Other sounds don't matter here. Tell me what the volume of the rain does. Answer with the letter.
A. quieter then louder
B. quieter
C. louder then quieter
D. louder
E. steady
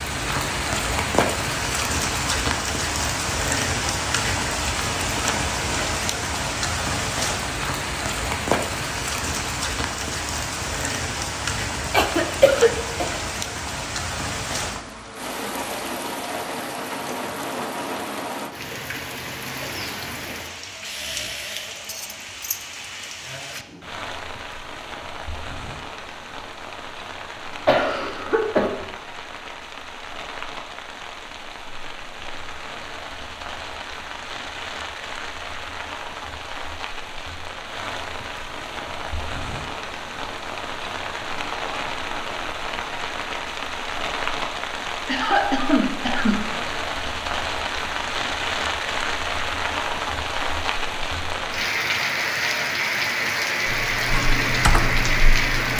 A.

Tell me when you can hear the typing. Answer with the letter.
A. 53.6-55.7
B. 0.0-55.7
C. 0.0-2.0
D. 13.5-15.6
A.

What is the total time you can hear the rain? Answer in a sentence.
You can hear the rain for 56 seconds altogether.